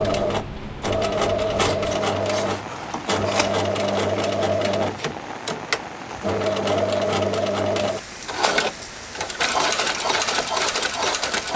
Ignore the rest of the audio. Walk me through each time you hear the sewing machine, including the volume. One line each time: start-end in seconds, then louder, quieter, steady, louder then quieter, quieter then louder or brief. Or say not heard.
0.0-11.5 steady.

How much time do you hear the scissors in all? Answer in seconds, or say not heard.
2 s.